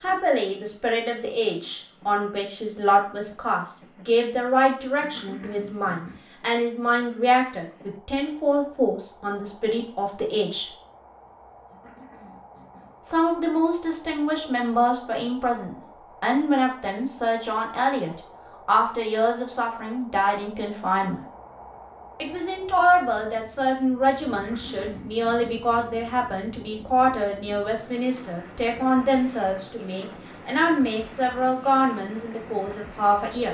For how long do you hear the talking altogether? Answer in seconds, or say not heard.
30 s.